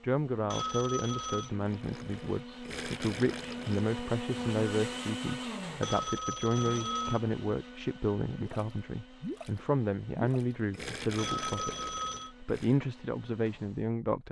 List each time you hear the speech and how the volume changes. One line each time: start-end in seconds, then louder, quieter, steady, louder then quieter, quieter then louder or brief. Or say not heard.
0.0-14.2 steady.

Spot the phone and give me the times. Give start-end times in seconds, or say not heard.
0.5-1.5, 5.8-7.2, 11.2-12.3.